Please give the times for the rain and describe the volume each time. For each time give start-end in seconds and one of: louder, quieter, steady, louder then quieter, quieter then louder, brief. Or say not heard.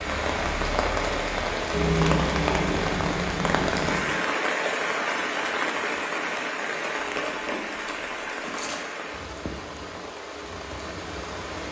0.0-11.6 quieter.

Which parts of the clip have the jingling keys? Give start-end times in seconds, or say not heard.
1.7-4.2, 7.1-8.8.